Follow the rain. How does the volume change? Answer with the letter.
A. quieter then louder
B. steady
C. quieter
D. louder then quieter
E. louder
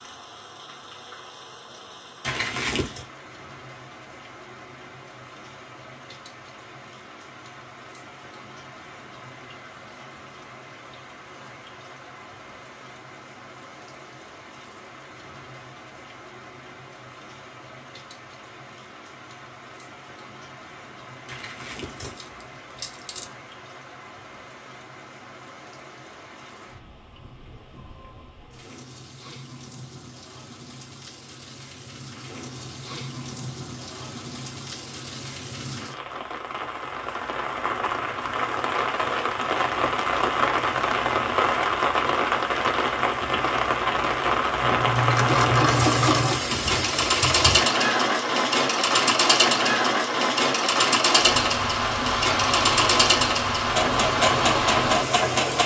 E.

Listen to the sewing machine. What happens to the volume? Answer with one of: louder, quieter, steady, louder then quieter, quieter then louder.
steady.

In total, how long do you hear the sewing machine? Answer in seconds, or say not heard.
11 s.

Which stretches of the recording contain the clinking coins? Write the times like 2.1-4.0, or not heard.
2.2-3.0, 21.2-23.2, 45.0-45.6.